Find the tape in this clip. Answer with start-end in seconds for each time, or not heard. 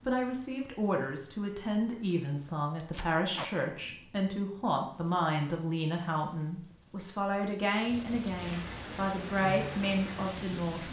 2.9-3.5.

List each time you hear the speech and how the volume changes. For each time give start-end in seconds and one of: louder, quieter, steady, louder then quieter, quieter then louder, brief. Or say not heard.
0.1-10.8 steady.